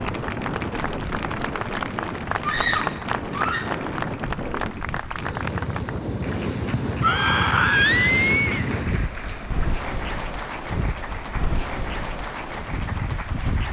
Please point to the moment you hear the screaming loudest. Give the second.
8 s.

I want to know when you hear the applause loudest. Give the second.
3 s.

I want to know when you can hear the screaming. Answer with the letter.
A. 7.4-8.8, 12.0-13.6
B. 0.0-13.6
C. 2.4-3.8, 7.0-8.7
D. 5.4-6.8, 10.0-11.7
C.